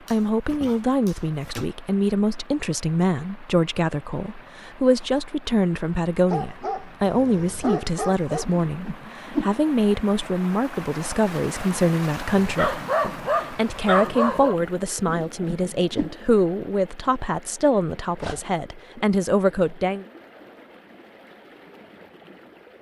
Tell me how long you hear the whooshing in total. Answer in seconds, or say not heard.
2 s.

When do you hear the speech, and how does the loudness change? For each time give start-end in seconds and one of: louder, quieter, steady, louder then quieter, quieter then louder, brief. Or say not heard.
0.1-20.1 steady.